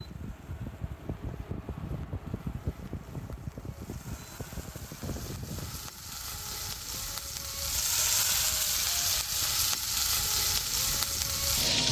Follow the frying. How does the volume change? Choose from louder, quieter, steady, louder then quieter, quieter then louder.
louder.